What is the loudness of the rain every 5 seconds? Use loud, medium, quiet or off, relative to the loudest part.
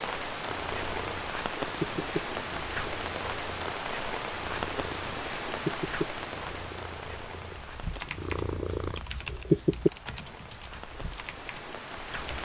loud, medium, medium.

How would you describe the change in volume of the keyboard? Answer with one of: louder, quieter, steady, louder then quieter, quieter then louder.
quieter.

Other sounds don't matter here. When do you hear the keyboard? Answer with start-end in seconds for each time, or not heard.
7.5-12.4.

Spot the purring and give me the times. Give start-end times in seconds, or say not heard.
0.4-9.9.